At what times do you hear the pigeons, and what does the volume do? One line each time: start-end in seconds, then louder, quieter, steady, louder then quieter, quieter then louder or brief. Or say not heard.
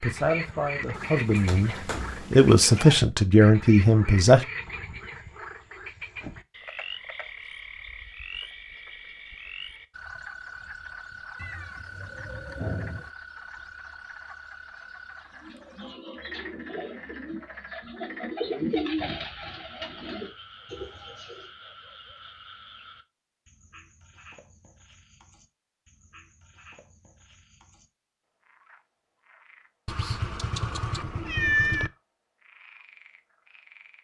15.3-21.5 louder then quieter.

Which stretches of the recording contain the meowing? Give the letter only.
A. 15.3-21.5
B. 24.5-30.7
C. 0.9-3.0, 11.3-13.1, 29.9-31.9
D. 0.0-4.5
C.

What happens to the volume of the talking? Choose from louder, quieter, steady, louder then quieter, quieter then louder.
louder.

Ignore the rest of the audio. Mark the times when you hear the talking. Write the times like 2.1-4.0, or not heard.
0.0-4.5.